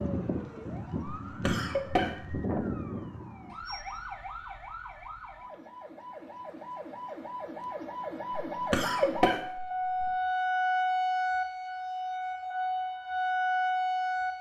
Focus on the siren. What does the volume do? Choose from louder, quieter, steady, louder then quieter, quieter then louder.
quieter then louder.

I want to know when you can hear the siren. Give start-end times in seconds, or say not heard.
0.0-14.3.